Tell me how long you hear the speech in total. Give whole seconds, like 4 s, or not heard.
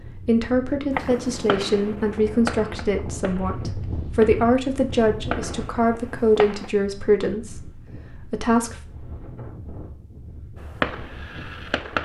9 s.